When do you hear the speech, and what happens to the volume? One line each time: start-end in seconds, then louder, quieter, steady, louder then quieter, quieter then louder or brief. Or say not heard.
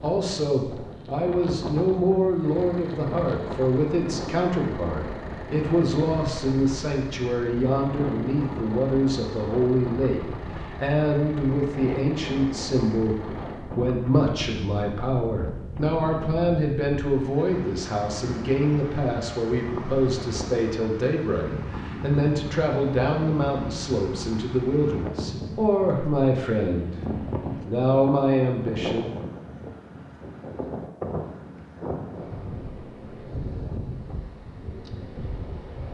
0.0-27.0 steady
27.6-29.1 brief.